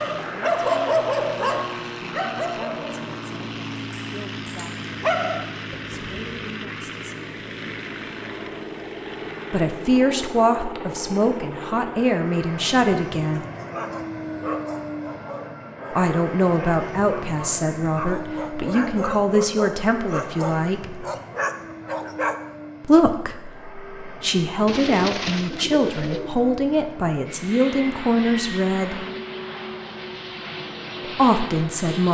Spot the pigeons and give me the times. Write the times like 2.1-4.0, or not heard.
24.6-26.4.